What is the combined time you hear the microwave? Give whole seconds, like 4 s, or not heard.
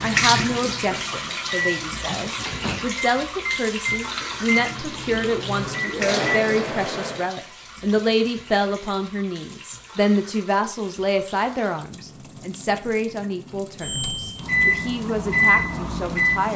10 s.